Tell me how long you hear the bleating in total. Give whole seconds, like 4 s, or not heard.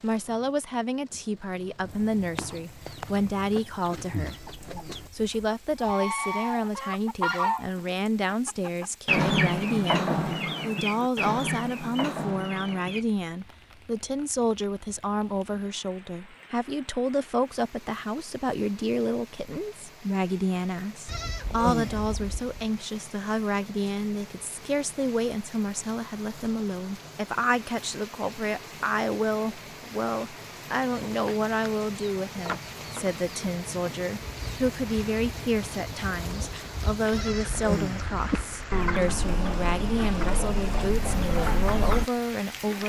5 s.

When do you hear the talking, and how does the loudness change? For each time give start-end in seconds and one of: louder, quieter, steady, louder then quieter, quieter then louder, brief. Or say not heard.
0.0-42.8 steady.